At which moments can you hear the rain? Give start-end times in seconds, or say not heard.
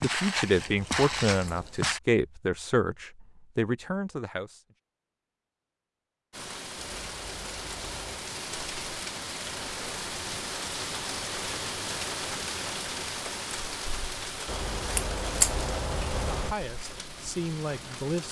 6.3-18.2.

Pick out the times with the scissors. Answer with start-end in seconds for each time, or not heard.
0.6-1.8, 6.8-8.2, 14.4-16.6.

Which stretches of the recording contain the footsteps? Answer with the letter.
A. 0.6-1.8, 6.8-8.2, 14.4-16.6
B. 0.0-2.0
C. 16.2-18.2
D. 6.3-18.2
B.